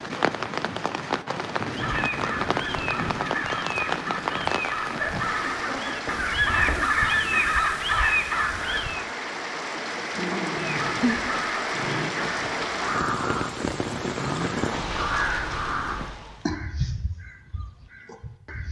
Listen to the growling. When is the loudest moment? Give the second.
11 s.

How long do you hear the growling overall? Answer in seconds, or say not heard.
5 s.